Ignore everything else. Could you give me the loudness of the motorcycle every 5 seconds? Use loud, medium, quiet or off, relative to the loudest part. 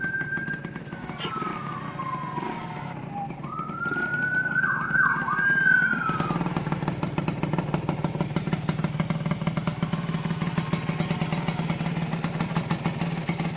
medium, loud, loud.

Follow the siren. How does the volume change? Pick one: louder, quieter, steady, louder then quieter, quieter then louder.
louder.